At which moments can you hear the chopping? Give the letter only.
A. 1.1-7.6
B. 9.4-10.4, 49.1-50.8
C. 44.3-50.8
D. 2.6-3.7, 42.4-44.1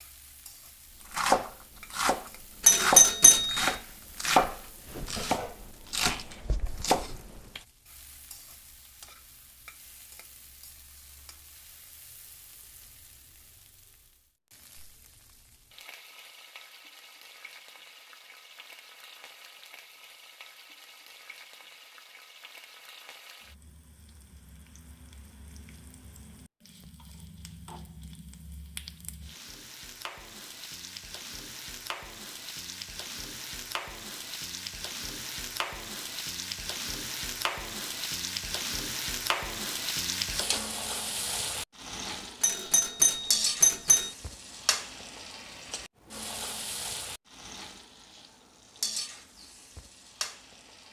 A.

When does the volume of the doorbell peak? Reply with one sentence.
The loudest moment of the doorbell is at 3 seconds.